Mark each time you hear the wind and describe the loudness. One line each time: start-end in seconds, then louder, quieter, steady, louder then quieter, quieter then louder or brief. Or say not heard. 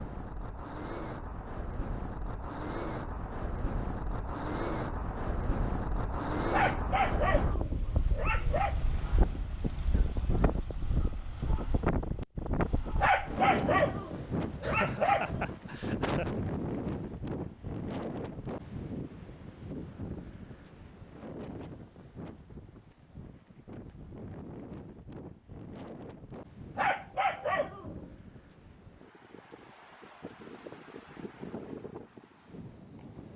0.0-33.3 quieter.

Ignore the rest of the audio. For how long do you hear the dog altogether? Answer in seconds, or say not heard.
6 s.